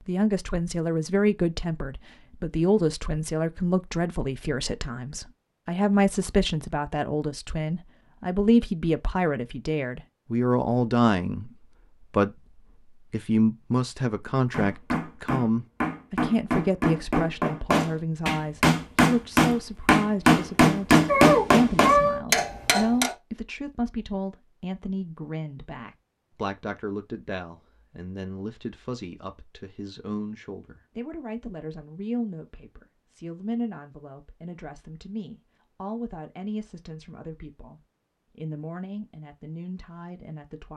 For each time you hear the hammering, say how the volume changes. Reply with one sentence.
You can hear the hammering from 14.5 to 23.1 s, getting louder.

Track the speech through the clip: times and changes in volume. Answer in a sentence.
You can hear the speech from 0.1 to 40.7 s, getting quieter.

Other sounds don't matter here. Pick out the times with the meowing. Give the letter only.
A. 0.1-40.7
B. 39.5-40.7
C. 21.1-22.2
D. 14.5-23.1
C.